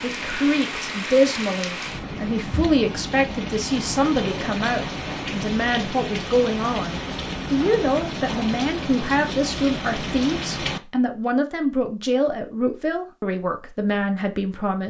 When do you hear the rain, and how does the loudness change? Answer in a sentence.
The rain can be heard from 0.0 to 10.8 s, at a steady volume.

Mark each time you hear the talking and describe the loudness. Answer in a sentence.
The talking can be heard from 0.0 to 14.8 s, at a steady volume.